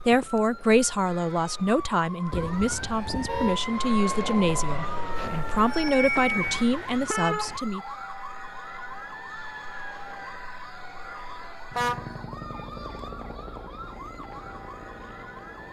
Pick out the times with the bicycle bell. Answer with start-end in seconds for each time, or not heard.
5.2-6.7.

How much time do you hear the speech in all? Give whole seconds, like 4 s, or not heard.
8 s.